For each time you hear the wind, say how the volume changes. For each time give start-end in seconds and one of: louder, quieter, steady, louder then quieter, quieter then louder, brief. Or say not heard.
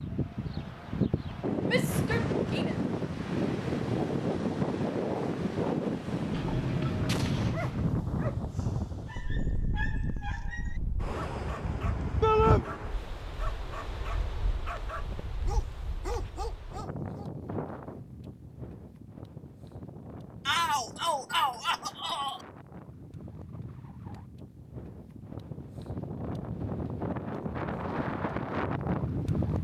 0.0-29.5 quieter then louder.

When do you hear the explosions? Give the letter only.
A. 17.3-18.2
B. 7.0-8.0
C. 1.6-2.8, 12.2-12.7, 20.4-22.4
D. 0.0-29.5
B.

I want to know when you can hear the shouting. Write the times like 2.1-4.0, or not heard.
1.6-2.8, 12.2-12.7, 20.4-22.4.